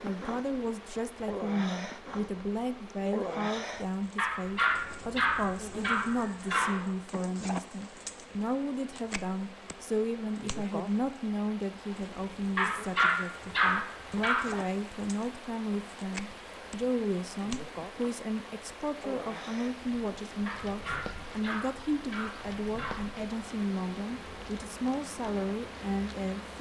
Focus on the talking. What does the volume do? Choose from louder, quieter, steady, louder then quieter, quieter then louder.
steady.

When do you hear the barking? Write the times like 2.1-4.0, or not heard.
4.2-6.8, 12.6-14.7, 20.4-23.1.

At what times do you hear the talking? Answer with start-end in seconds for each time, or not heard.
0.0-26.5.